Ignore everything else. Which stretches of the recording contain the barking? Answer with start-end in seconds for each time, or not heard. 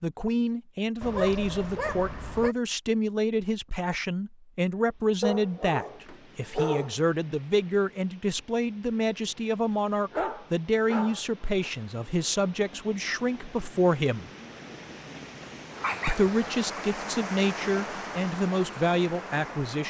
1.0-2.5, 5.2-7.0, 10.1-11.7, 15.8-16.4.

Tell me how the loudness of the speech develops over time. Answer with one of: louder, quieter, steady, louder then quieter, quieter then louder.
steady.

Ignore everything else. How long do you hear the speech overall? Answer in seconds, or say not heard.
18 s.